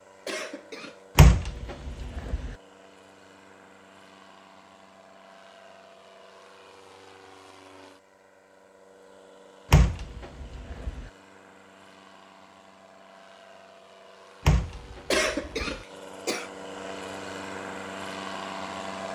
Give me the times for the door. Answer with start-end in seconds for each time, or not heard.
1.1-2.5, 9.7-11.1, 14.4-15.8.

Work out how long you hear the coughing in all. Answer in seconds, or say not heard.
2 s.